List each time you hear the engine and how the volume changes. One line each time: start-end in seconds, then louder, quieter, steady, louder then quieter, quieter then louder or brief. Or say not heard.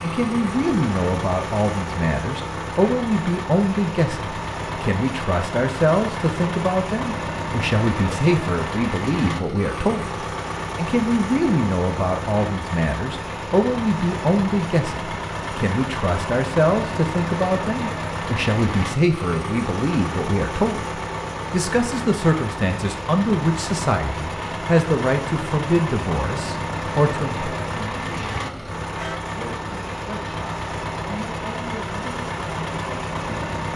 0.0-33.7 steady.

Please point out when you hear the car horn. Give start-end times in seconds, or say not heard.
28.9-29.4.